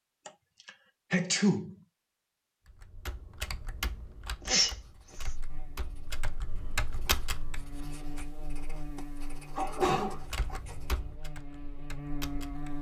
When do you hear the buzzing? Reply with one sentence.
You can hear the buzzing from 5.2 to 12.7 s.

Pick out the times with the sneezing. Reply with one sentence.
You can hear the sneezing from 0.2 to 1.8 s, from 4.5 to 5.3 s and from 9.6 to 10.6 s.